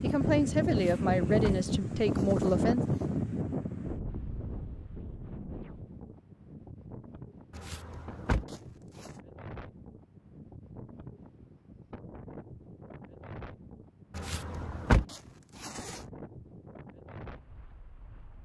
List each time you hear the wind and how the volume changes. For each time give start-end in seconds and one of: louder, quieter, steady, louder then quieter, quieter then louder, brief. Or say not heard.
0.0-18.4 quieter.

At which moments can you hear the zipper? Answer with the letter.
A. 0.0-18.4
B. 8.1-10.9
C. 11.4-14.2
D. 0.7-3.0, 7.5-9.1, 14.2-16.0
D.